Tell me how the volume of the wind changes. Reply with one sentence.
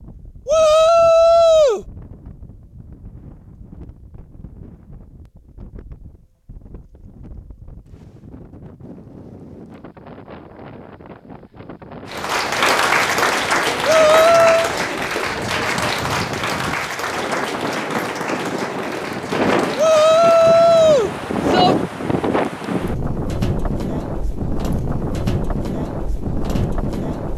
The volume of the wind goes up.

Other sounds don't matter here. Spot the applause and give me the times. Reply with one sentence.
The applause can be heard from 12.1 to 20.6 s.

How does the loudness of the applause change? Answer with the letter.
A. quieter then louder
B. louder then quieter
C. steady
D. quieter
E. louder
D.